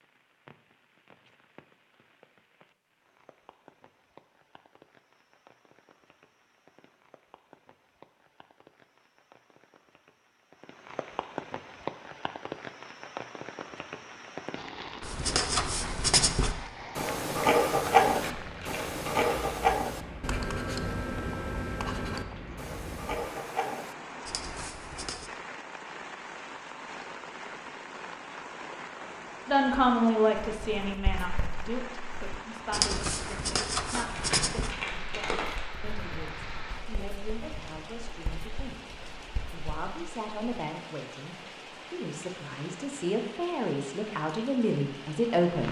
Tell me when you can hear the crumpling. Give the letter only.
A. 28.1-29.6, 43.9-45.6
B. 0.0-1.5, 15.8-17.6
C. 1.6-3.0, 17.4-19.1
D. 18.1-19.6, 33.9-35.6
D.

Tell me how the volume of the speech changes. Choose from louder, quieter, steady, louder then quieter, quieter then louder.
quieter then louder.